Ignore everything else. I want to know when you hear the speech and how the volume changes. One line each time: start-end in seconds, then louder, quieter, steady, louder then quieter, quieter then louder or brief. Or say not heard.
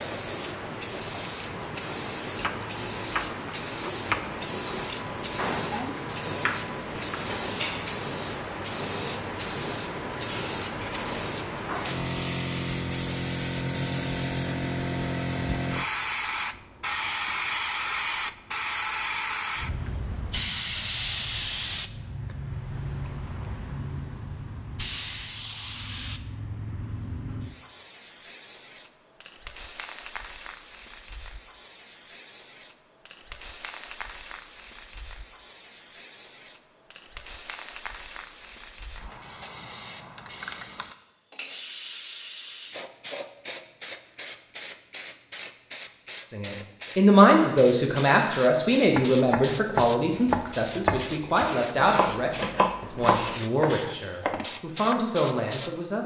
46.3-56.0 quieter.